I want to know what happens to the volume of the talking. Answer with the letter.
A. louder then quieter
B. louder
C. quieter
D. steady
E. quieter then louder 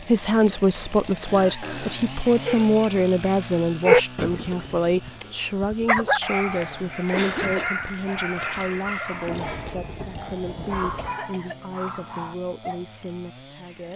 C.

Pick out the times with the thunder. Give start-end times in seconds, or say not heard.
9.2-11.2.